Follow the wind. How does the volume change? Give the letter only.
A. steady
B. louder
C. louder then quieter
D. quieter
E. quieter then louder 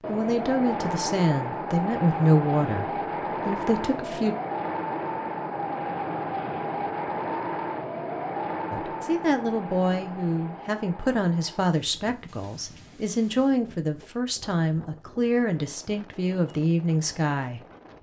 D.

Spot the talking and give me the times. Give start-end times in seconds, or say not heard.
0.1-4.3, 8.7-17.6.